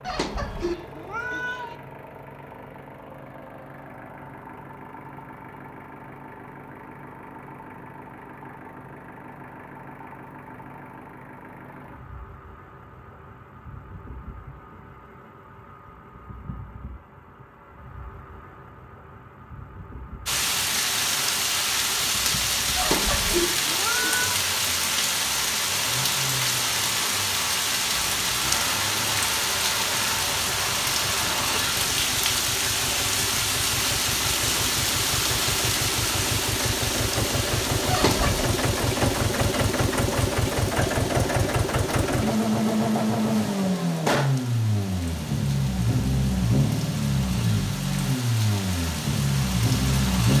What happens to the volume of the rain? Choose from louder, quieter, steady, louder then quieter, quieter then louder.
quieter.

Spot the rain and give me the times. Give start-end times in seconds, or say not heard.
20.2-50.3.